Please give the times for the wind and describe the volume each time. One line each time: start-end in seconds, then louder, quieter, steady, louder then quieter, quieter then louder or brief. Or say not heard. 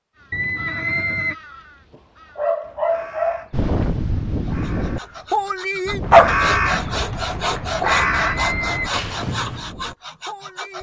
3.5-10.7 quieter.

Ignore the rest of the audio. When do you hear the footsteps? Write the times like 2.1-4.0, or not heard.
not heard.